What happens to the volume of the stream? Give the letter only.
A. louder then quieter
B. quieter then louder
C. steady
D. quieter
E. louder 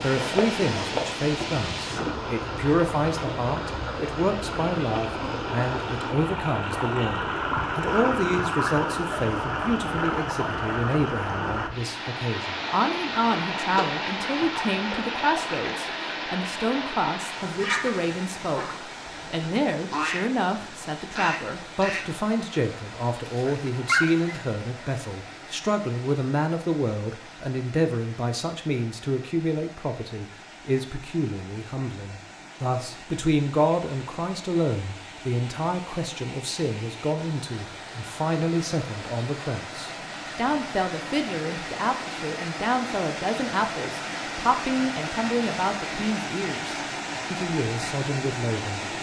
B.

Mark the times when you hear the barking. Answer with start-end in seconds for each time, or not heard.
23.2-24.4.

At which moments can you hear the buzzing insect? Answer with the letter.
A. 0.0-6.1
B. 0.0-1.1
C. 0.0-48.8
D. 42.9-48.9
A.